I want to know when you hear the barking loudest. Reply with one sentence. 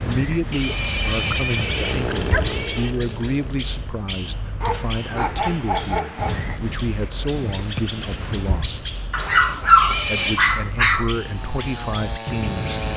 The volume of the barking peaks at 10 seconds.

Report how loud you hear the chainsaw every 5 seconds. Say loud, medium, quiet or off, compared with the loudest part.
loud, off, loud.